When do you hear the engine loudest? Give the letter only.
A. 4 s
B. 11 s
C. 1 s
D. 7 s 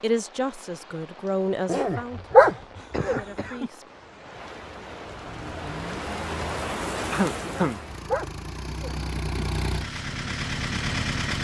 B.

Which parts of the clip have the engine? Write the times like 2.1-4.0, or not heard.
5.0-11.3.